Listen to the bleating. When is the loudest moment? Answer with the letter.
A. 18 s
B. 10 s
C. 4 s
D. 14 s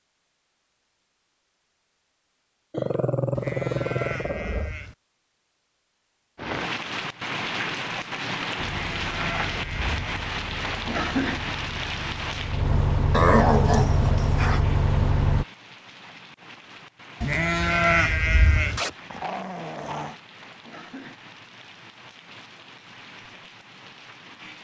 A.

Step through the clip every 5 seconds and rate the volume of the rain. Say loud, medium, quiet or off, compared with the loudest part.
off, loud, loud, quiet, quiet.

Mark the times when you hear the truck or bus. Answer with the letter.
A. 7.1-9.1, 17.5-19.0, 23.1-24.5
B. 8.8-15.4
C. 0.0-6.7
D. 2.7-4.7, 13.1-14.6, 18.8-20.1
B.